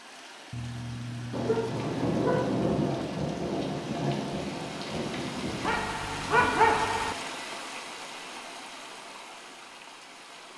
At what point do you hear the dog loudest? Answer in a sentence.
The loudest moment of the dog is at 7 seconds.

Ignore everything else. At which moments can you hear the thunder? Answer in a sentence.
The thunder can be heard from 1.3 to 5.8 s.